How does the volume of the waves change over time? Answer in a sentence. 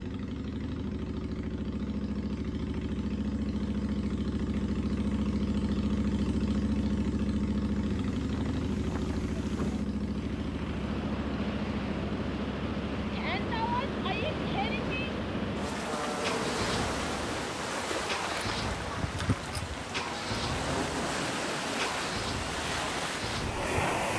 The loudness of the waves goes up.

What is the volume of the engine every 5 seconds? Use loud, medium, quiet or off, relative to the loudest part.
loud, loud, medium, medium, medium.